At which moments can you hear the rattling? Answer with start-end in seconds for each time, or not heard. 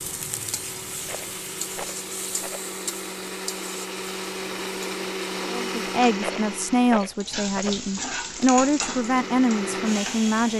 1.1-2.7, 6.2-7.8.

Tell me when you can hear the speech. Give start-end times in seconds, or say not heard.
5.5-10.5.